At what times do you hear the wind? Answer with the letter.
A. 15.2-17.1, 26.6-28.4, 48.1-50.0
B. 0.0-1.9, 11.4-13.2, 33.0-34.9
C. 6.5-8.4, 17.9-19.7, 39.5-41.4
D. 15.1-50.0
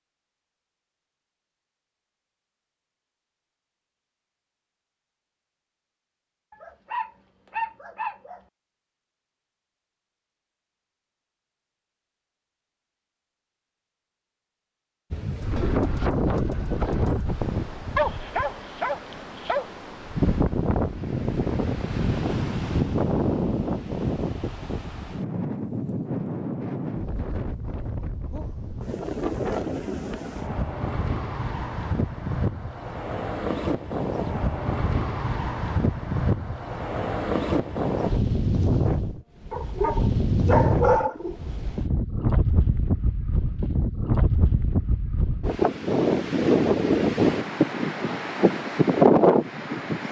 D.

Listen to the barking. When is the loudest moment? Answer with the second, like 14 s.
41 s.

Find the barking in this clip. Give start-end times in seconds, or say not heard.
6.5-8.4, 17.9-19.7, 39.5-41.4.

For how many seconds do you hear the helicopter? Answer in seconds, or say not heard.
not heard.